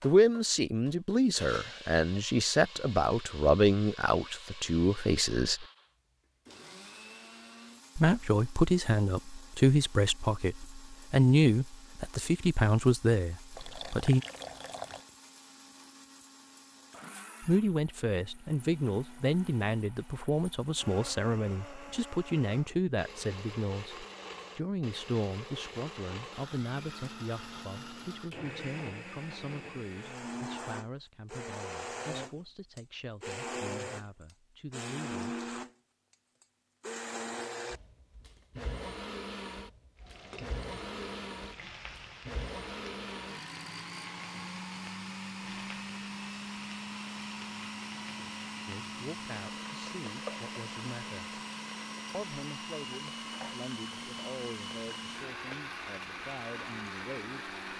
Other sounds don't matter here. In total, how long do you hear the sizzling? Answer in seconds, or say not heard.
18 s.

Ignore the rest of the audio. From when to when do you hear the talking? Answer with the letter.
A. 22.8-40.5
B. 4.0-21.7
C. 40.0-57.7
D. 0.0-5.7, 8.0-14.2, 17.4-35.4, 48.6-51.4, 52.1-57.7
D.